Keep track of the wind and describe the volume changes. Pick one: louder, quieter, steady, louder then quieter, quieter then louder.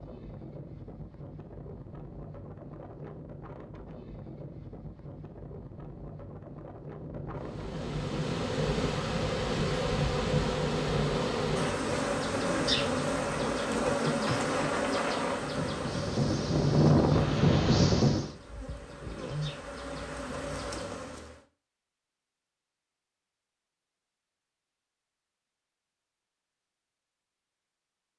louder.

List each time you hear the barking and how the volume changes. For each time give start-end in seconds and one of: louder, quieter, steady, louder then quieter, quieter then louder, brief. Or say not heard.
not heard.